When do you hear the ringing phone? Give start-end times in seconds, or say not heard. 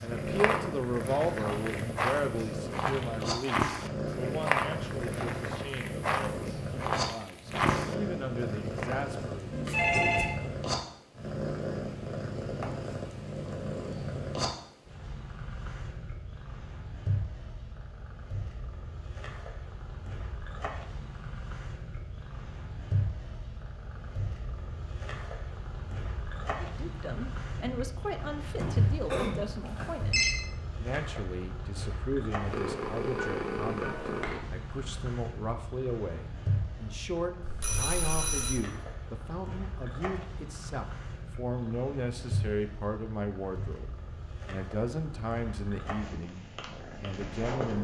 9.5-10.3, 28.6-30.4, 37.4-38.6.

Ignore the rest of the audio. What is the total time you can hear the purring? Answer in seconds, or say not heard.
48 s.